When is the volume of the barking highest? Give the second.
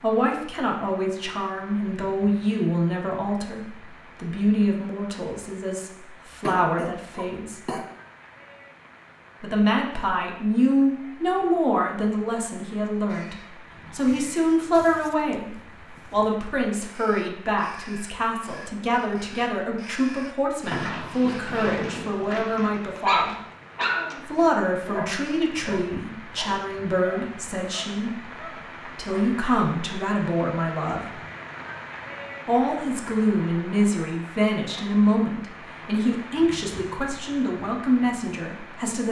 23 s.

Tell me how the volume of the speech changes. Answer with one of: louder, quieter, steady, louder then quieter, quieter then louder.
steady.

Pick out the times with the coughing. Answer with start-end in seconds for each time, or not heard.
6.4-7.9.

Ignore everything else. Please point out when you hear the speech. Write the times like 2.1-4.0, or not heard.
0.0-7.8, 9.4-23.4, 24.2-31.1, 32.5-39.0.